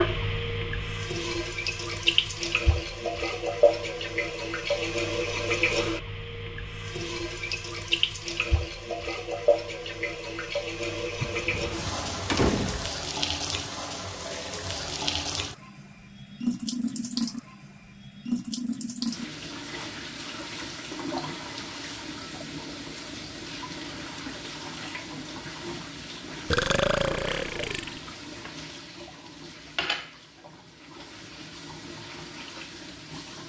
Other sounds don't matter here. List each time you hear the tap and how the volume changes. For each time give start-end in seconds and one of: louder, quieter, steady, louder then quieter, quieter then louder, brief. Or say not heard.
0.0-33.4 quieter.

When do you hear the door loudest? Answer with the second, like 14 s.
12 s.